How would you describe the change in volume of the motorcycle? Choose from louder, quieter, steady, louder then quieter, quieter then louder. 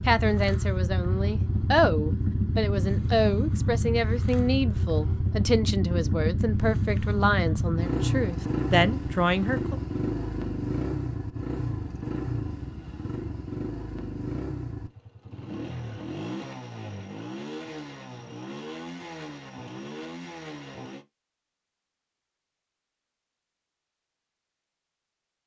quieter.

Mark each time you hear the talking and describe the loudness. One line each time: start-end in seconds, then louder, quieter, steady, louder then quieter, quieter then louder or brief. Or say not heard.
0.1-9.8 steady.